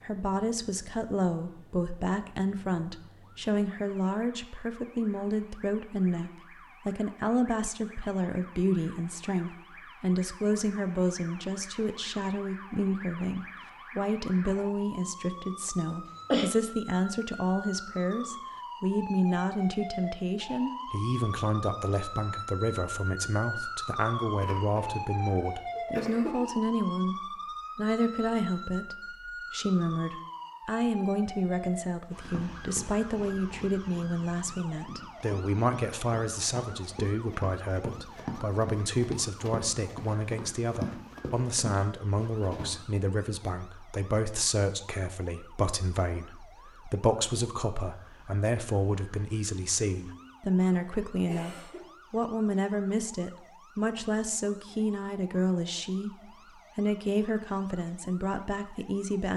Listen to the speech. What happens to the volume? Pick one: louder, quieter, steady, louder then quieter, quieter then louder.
steady.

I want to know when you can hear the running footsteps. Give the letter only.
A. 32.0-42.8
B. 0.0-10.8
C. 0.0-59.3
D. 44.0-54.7
A.